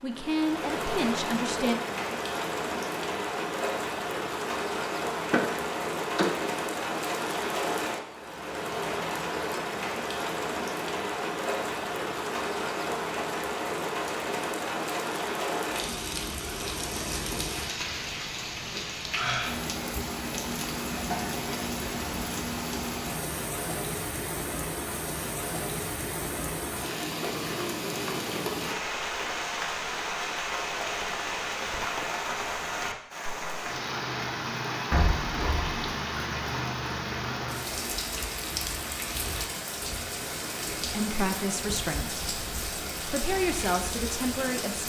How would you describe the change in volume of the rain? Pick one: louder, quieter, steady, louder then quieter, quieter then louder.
steady.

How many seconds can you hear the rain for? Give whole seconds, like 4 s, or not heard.
45 s.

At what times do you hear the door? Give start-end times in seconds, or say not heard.
5.2-6.5, 34.9-35.8.